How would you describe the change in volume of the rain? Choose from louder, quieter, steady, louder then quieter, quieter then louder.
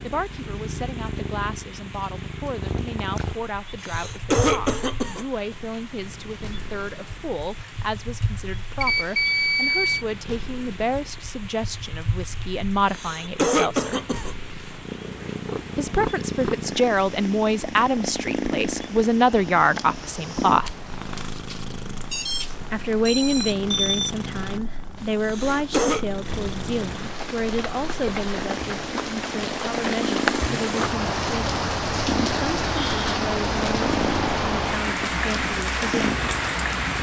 louder.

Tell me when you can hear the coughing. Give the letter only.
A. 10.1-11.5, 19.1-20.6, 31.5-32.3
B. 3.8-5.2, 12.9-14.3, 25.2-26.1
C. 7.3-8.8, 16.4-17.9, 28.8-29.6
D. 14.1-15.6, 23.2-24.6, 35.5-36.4
B.